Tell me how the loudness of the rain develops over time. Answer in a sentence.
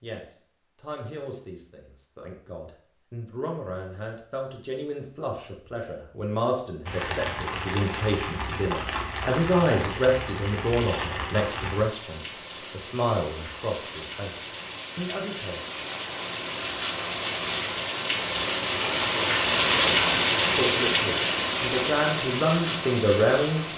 The volume of the rain goes up.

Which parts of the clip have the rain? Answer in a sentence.
You can hear the rain from 6.8 to 23.7 s.